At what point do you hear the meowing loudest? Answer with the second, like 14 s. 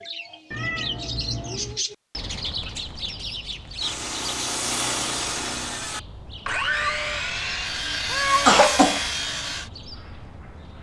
8 s.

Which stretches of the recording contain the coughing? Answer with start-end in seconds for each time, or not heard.
8.4-9.1.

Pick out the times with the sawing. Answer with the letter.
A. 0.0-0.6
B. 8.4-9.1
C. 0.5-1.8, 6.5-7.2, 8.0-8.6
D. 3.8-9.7
D.